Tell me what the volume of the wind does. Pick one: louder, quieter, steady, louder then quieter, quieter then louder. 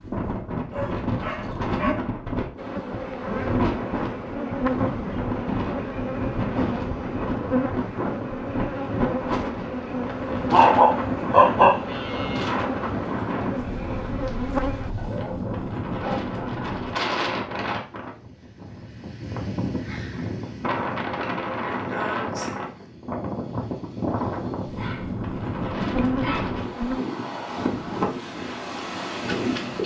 steady.